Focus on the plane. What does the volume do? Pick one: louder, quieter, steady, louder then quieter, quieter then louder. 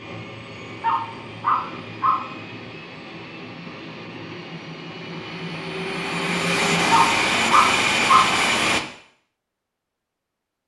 louder.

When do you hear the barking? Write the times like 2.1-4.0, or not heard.
0.8-2.2, 6.9-8.3.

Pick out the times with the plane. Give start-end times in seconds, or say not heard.
0.0-8.8.